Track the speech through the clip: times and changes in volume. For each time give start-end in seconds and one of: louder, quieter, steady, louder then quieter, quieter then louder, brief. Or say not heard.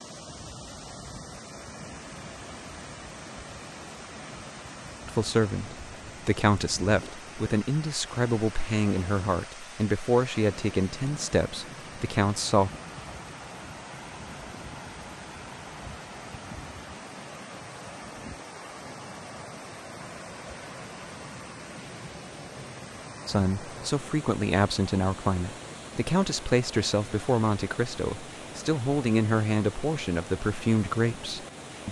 5.0-12.7 steady
23.2-31.8 steady.